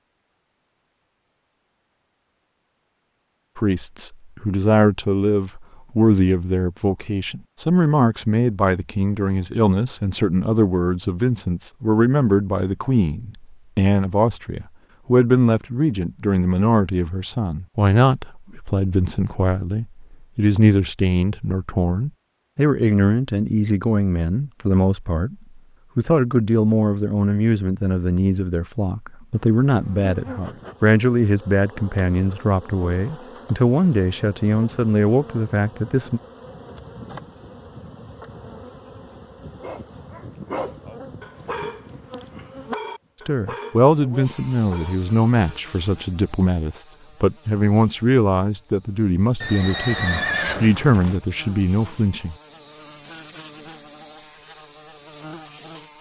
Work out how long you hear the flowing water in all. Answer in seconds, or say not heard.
not heard.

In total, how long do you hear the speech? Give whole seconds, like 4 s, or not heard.
41 s.